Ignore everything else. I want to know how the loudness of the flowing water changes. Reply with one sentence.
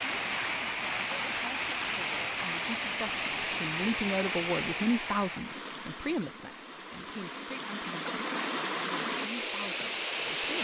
The loudness of the flowing water goes down, then up.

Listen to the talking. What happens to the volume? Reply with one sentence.
The volume of the talking goes up, then down.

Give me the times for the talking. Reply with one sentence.
You can hear the talking from 0.0 to 10.5 s.